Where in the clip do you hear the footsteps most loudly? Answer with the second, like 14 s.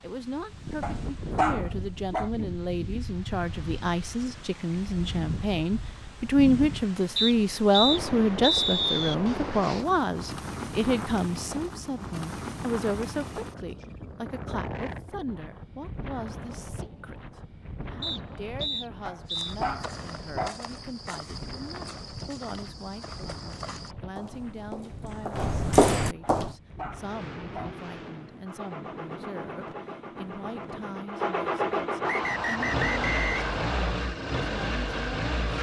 26 s.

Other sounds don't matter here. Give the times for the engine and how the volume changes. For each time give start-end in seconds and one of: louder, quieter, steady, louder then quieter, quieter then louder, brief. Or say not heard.
26.9-35.5 louder.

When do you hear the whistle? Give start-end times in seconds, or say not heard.
7.2-9.2, 18.0-19.6, 32.0-34.0.